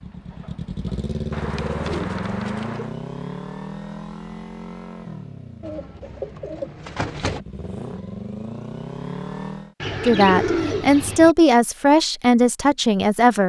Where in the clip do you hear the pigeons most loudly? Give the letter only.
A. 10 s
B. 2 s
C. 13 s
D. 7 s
A.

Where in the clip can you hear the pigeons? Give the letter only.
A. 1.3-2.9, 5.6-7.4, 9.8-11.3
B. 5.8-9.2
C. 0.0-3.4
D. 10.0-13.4
A.